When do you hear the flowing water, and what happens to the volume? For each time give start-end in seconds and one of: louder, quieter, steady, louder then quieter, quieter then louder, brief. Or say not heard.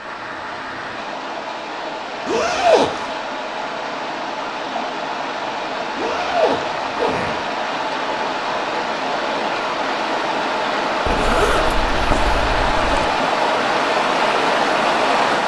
0.0-15.4 louder.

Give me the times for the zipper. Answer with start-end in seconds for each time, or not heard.
2.2-3.1, 6.0-7.4, 11.1-13.1.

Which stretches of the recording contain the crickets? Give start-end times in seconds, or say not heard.
not heard.